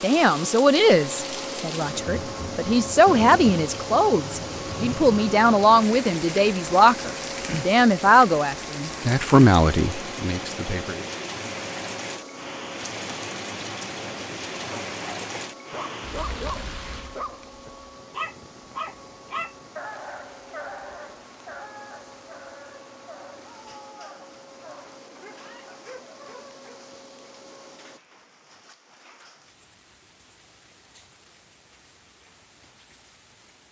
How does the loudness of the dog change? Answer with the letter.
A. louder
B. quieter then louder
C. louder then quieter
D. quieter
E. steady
D.